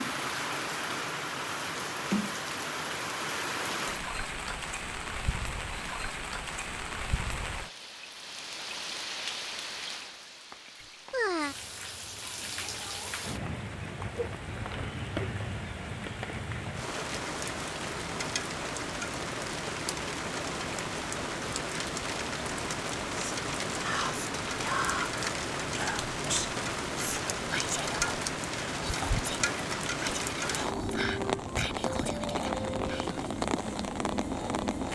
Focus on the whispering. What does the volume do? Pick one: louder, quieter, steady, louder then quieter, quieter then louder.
quieter.